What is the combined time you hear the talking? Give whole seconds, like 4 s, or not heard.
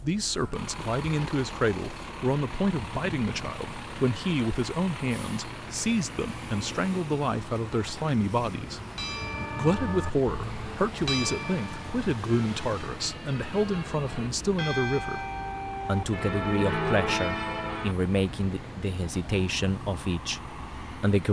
20 s.